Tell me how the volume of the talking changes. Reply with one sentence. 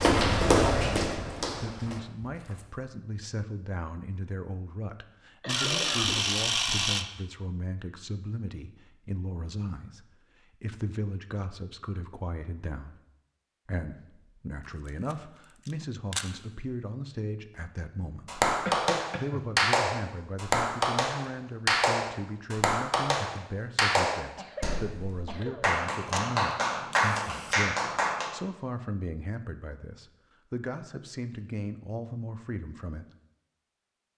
The volume of the talking stays about the same.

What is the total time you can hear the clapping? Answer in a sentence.
You can hear the clapping for 10 seconds altogether.